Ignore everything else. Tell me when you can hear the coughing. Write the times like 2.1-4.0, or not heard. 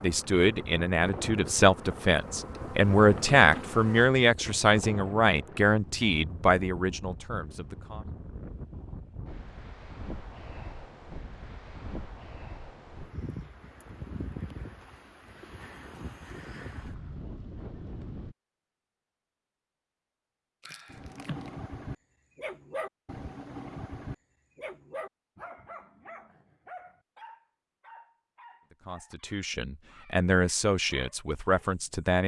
20.6-21.5.